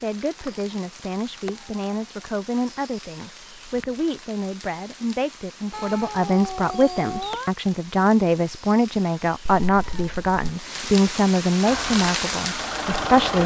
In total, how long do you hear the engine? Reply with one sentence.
The engine can be heard for 2 seconds in total.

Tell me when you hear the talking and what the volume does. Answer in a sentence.
You can hear the talking from 0.0 to 13.4 s, getting louder.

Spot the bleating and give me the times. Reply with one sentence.
The bleating can't be heard in this clip.